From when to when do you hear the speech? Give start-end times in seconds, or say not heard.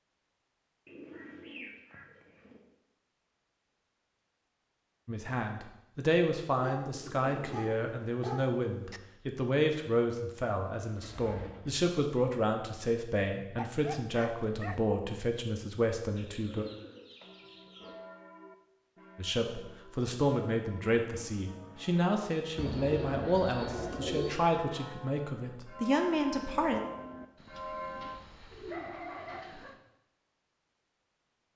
5.0-16.6, 19.1-26.8.